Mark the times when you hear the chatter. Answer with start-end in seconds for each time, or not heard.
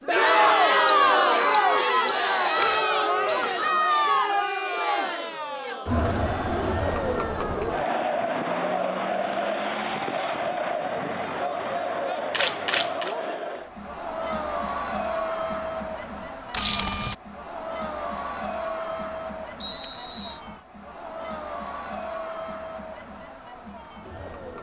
0.0-24.5.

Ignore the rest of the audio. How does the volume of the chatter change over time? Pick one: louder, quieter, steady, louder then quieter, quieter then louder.
quieter.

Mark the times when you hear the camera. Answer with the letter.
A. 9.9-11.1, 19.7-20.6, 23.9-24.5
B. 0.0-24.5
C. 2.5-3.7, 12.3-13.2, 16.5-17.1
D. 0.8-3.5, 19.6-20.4
C.